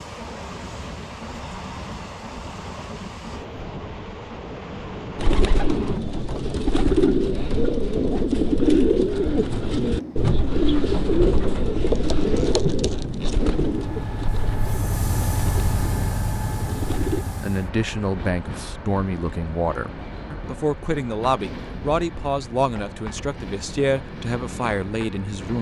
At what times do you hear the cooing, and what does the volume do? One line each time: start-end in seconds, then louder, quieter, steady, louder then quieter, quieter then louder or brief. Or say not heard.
5.2-17.2 quieter.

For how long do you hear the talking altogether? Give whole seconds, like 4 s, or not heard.
8 s.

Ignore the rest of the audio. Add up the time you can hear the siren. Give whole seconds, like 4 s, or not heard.
not heard.